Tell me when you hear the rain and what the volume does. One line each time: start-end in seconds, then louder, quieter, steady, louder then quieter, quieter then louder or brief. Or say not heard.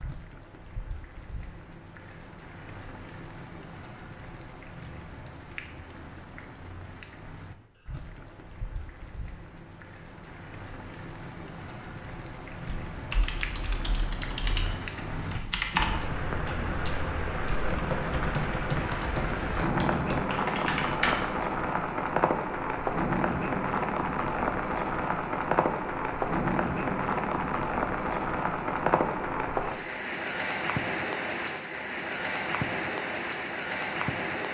0.0-34.4 louder.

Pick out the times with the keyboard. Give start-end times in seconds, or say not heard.
12.7-21.2.